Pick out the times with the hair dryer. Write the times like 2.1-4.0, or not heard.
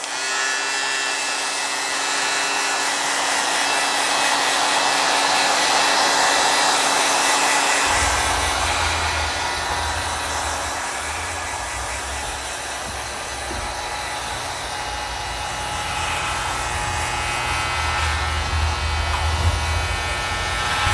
0.0-20.8.